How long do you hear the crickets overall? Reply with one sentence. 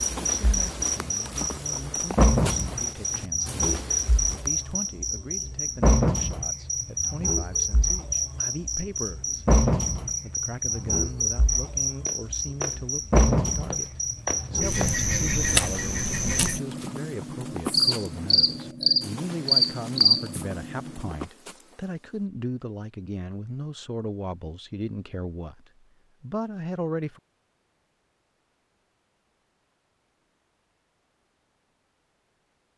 The crickets can be heard for 21 seconds in total.